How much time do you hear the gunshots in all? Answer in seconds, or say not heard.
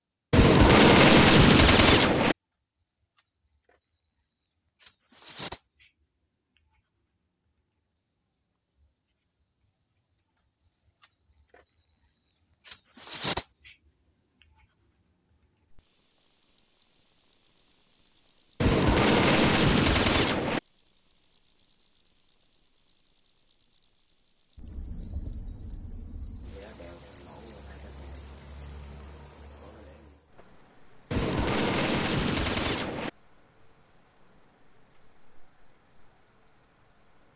6 s.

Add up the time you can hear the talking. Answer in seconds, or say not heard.
not heard.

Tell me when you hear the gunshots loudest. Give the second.
1 s.